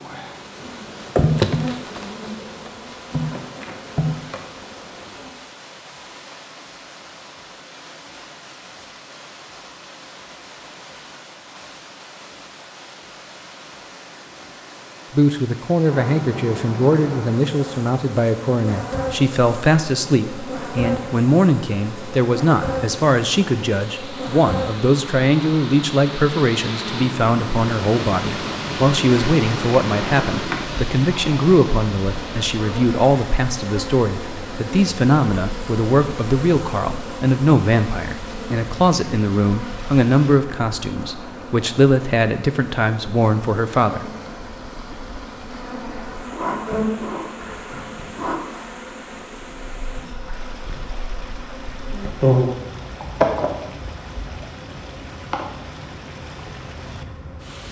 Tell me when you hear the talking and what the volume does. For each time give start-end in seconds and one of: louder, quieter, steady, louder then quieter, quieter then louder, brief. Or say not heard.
15.1-44.1 steady.